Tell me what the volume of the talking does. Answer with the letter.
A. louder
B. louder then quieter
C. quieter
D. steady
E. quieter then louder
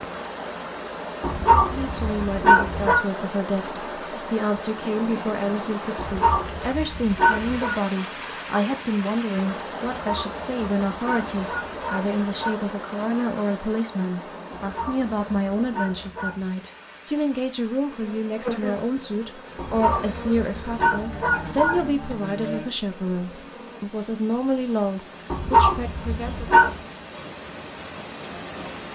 D.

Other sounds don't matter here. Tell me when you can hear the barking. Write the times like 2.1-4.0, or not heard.
1.2-3.0, 6.0-7.8, 9.8-12.6, 14.5-16.5, 19.6-21.9, 25.3-26.8.